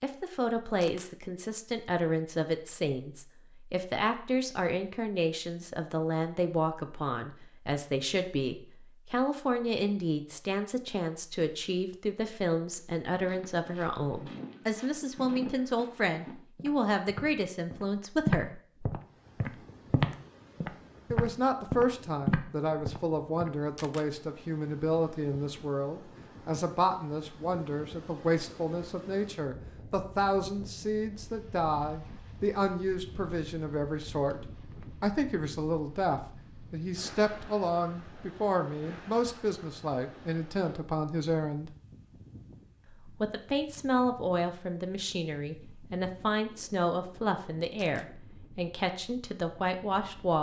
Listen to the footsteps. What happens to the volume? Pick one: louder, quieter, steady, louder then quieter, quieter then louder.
louder.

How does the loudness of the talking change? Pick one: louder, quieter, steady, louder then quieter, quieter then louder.
steady.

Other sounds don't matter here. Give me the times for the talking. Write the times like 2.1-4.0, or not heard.
0.0-18.6, 21.1-41.7, 43.0-50.3.